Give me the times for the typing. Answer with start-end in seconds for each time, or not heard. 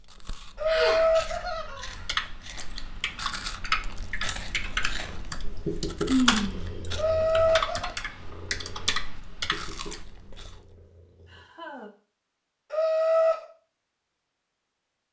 2.0-10.0.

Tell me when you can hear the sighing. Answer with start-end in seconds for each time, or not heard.
0.7-1.1, 6.0-7.2, 11.2-11.9.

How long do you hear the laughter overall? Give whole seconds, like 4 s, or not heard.
3 s.